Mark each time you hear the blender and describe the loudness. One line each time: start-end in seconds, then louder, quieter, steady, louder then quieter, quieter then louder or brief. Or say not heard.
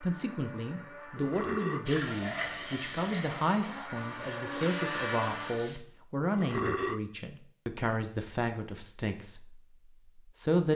0.0-5.8 louder.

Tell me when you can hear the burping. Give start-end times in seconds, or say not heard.
1.1-1.9, 6.3-7.0.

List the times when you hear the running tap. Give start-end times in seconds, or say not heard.
1.9-5.8.